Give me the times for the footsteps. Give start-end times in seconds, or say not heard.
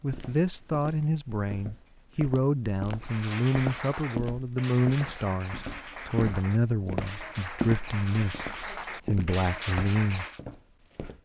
0.0-11.2.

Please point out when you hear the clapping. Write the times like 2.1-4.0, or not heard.
3.0-10.4.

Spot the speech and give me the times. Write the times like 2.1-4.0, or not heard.
0.0-10.2.